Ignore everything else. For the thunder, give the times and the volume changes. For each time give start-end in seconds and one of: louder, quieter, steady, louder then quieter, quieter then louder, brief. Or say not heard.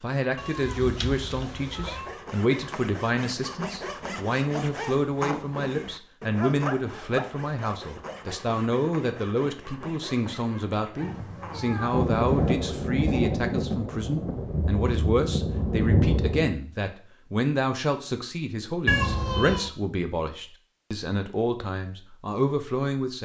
11.9-16.5 quieter then louder.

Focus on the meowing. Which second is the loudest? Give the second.
19 s.